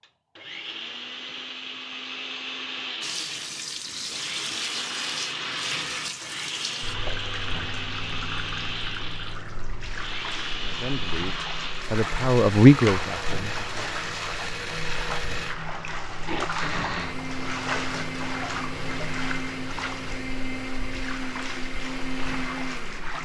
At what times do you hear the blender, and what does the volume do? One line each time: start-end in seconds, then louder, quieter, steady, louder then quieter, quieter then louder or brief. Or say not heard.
0.0-23.1 steady.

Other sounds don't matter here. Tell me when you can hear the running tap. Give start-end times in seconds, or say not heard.
3.0-23.1.